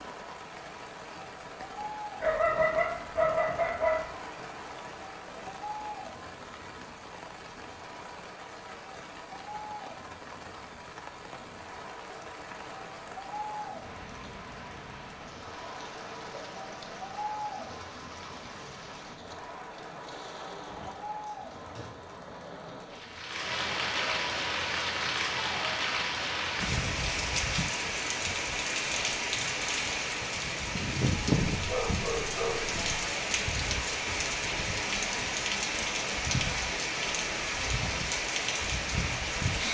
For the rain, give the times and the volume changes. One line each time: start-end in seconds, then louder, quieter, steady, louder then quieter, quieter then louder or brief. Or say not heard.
0.0-39.7 louder.